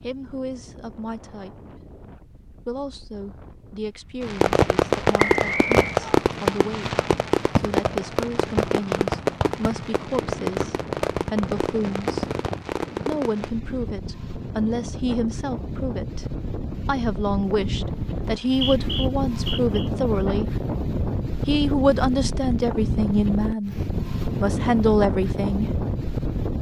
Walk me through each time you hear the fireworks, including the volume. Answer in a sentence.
The fireworks can be heard from 4.2 to 13.5 s, getting quieter.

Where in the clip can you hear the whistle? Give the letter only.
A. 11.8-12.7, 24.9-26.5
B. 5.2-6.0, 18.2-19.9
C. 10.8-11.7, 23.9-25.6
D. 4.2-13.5
B.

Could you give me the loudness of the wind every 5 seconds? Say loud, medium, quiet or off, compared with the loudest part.
quiet, quiet, medium, loud, loud, loud.